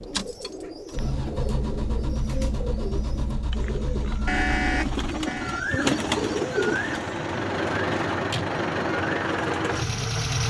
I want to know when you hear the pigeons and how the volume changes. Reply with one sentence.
You can hear the pigeons from 0.0 to 9.9 s, getting louder then quieter.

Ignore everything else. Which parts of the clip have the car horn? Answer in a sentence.
You can hear the car horn from 4.2 to 5.6 s.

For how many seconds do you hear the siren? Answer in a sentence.
The siren can't be heard in this clip.